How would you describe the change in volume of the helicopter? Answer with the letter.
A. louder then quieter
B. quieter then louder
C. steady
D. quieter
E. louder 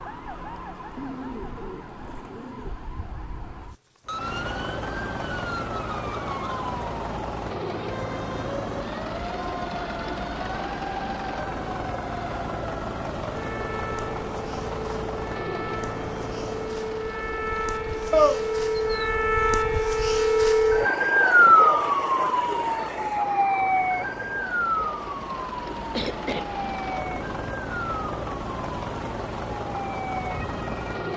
B.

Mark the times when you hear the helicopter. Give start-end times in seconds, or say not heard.
4.0-31.1.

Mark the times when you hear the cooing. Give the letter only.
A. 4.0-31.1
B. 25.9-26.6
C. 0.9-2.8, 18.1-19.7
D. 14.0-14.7
C.